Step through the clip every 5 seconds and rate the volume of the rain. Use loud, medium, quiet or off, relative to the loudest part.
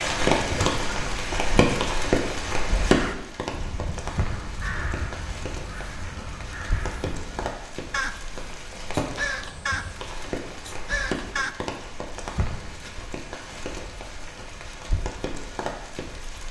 loud, medium, medium, medium.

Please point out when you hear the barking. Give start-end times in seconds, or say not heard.
not heard.